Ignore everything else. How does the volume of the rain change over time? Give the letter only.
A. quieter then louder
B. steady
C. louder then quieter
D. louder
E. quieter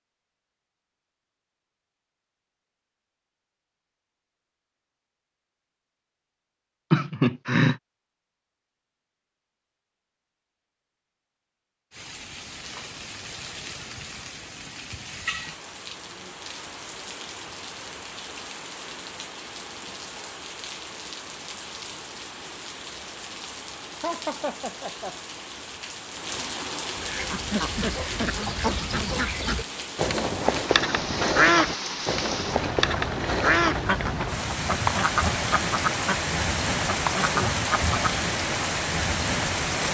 D.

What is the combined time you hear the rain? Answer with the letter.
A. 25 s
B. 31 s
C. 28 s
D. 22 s
C.